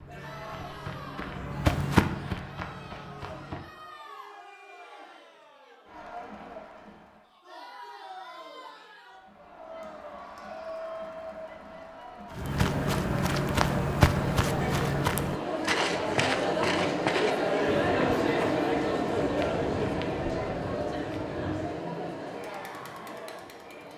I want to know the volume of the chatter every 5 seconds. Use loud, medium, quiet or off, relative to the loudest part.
quiet, quiet, medium, loud, medium.